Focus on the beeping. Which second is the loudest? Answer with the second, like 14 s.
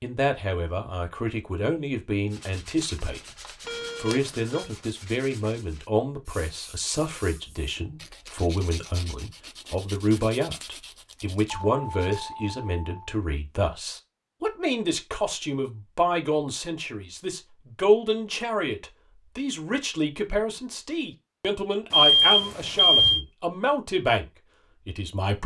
22 s.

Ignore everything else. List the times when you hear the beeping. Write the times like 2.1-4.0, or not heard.
3.6-4.7, 11.5-13.2, 21.9-23.2.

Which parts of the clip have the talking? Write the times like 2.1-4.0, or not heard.
0.0-3.2, 4.0-24.2, 24.9-25.4.